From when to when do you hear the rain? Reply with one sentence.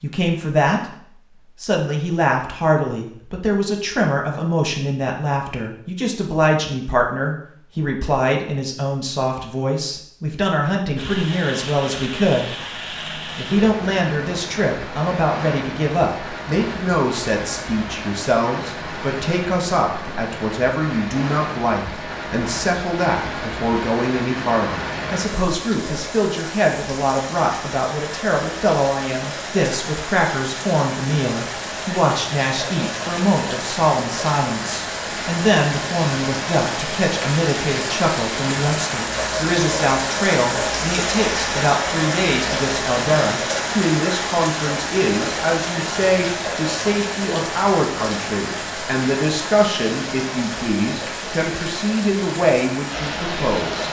The rain can be heard from 10.9 to 53.8 s.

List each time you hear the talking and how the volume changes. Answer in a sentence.
You can hear the talking from 0.0 to 53.8 s, at a steady volume.